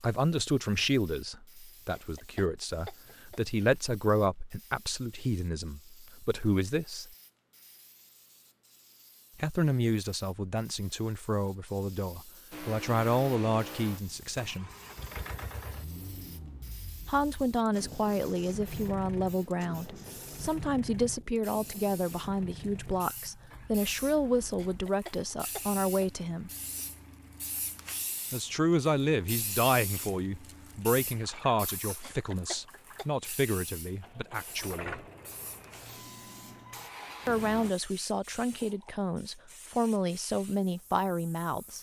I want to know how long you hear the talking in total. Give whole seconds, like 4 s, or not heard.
33 s.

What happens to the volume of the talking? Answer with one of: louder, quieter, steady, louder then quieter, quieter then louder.
steady.